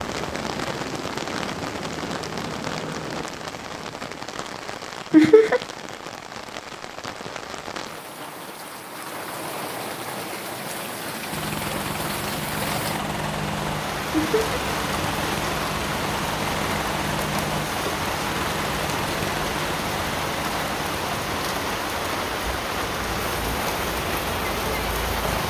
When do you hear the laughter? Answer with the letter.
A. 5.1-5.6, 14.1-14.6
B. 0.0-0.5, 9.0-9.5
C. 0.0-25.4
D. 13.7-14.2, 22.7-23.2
A.